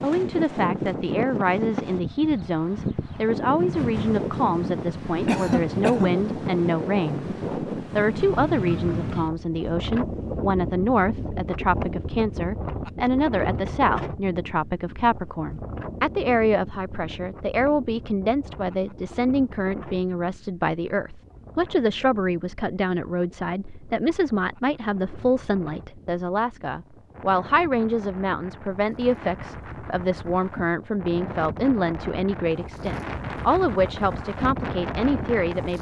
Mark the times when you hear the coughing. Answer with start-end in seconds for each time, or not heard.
5.2-6.2.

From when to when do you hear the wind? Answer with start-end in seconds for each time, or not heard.
0.0-35.7.